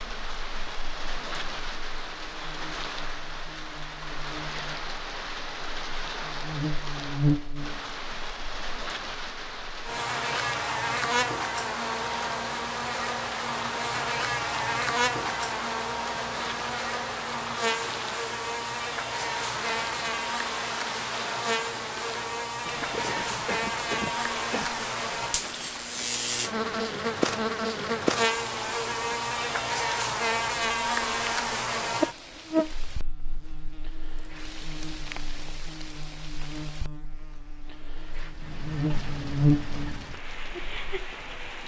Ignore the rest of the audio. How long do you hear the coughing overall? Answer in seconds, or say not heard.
2 s.